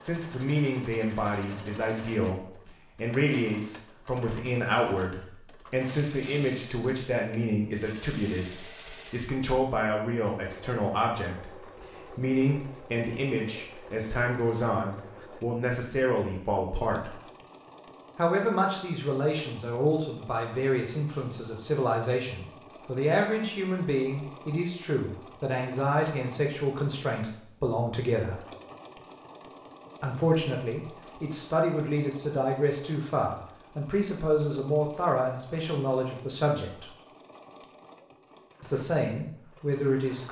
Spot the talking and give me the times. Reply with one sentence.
You can hear the talking from 0.0 to 17.2 s, from 18.1 to 28.4 s, from 30.0 to 36.9 s and from 38.6 to 40.2 s.